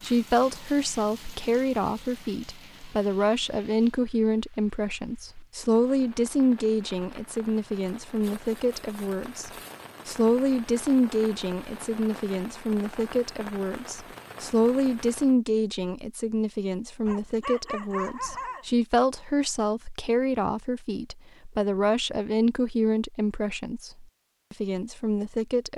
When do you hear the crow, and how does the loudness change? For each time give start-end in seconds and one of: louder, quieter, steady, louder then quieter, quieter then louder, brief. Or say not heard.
not heard.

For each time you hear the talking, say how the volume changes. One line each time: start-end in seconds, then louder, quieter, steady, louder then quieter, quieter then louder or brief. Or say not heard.
0.0-25.7 steady.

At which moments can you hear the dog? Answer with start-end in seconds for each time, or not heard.
17.1-18.6.